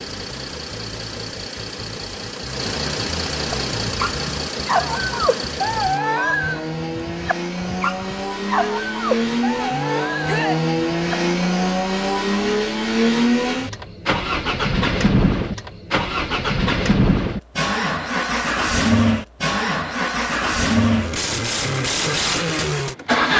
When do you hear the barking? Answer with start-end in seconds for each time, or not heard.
3.5-11.2.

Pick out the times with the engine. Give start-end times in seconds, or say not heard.
0.0-23.3.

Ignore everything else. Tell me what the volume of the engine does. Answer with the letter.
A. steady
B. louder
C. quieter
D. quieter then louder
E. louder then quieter
B.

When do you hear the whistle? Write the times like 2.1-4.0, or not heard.
not heard.